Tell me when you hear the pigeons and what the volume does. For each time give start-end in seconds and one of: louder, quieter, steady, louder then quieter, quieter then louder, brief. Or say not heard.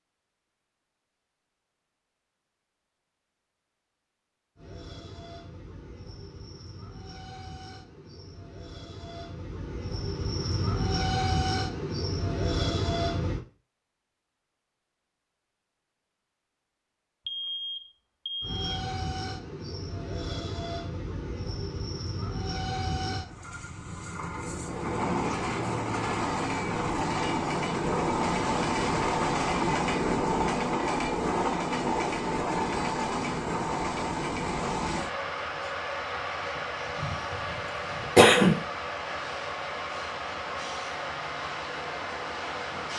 not heard.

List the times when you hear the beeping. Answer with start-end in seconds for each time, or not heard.
17.2-18.8.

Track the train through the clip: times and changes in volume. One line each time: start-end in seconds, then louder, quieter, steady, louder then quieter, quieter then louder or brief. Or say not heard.
4.5-13.4 louder
18.4-42.9 louder then quieter.